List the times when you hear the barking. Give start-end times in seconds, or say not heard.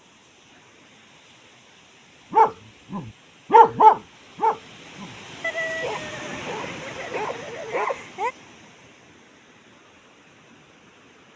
2.3-8.3.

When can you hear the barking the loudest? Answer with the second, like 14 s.
4 s.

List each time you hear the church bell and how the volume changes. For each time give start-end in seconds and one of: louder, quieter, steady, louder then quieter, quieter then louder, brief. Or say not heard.
not heard.